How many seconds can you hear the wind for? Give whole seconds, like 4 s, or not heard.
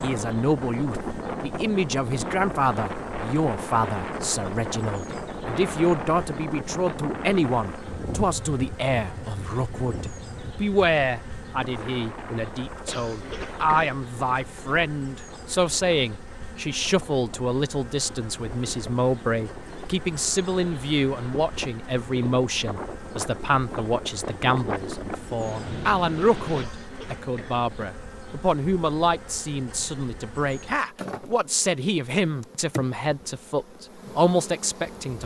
27 s.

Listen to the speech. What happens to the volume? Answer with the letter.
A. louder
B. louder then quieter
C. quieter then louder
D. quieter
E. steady
E.